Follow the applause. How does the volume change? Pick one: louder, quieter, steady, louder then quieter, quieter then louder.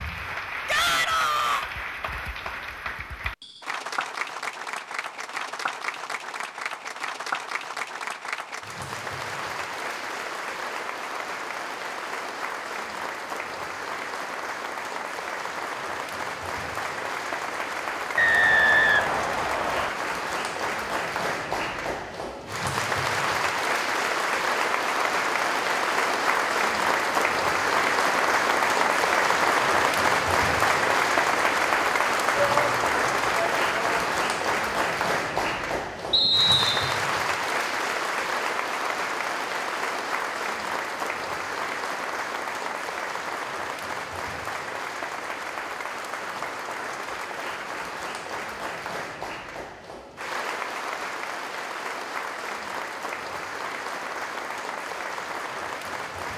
louder then quieter.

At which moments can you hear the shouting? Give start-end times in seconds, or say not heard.
0.7-1.6, 32.4-34.0.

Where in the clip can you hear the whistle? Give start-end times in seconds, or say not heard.
18.1-19.9, 36.1-37.0.